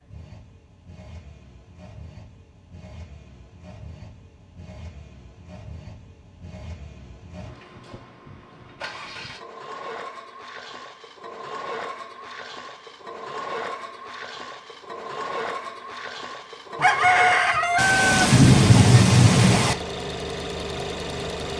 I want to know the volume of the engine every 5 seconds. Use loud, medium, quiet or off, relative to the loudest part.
quiet, medium, medium, loud, loud.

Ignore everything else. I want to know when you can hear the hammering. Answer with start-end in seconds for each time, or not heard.
not heard.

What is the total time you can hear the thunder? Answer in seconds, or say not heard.
2 s.